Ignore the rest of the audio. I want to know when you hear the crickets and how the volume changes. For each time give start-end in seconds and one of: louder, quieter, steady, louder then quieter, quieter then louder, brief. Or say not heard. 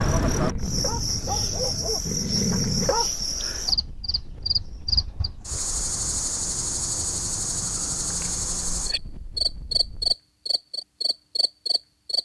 0.0-12.2 steady.